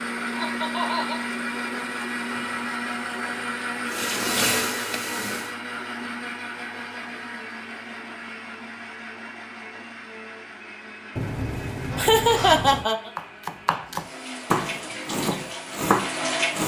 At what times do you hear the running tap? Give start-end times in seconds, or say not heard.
3.8-5.5, 13.9-16.6.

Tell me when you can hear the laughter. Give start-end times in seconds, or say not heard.
0.3-1.2, 11.9-13.1.